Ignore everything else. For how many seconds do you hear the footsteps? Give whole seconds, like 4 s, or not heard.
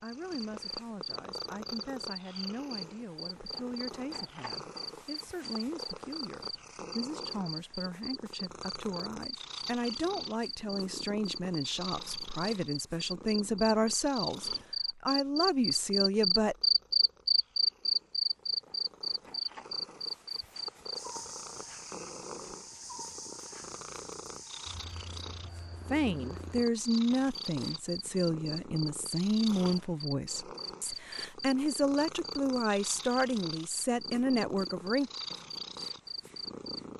not heard.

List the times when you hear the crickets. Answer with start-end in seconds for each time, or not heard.
0.0-36.8.